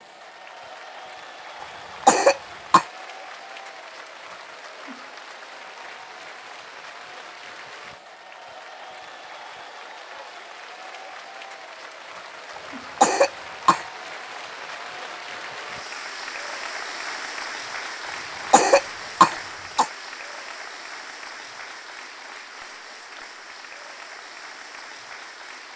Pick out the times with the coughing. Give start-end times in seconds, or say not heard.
1.6-2.9, 12.6-13.8, 18.1-19.9.